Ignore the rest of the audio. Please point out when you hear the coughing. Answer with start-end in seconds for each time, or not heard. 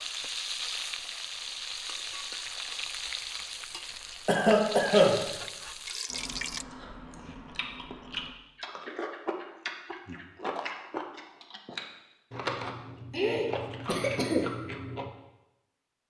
4.2-5.2, 13.1-14.4.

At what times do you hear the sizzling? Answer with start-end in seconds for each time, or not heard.
0.0-6.7.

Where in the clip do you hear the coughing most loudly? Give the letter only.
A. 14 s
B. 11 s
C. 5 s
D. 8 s
C.